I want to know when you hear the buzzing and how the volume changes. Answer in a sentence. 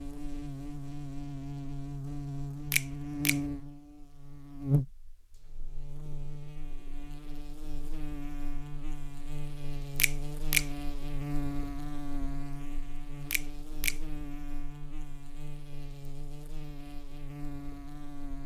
You can hear the buzzing from 0.0 to 18.4 s, getting quieter.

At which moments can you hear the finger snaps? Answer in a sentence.
The finger snaps can be heard from 2.7 to 3.4 s, from 9.9 to 10.7 s and from 13.3 to 13.9 s.